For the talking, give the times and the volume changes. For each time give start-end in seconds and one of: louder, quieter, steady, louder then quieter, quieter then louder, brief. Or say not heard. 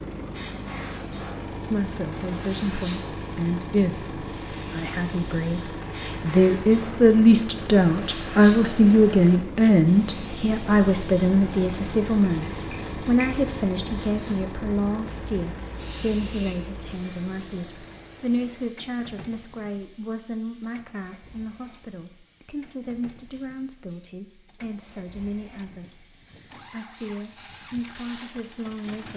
1.7-29.1 quieter.